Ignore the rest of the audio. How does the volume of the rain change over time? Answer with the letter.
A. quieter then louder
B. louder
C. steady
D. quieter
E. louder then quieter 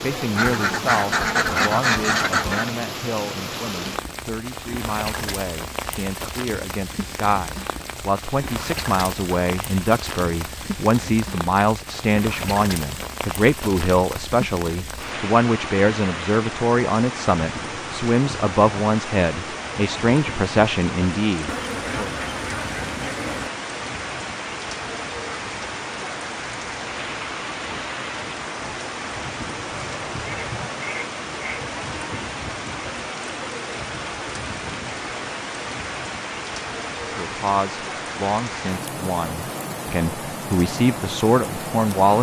C.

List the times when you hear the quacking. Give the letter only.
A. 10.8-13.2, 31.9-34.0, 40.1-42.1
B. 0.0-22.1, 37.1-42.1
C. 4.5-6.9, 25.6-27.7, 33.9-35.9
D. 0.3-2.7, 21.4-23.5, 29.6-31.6
D.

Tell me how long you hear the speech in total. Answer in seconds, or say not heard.
27 s.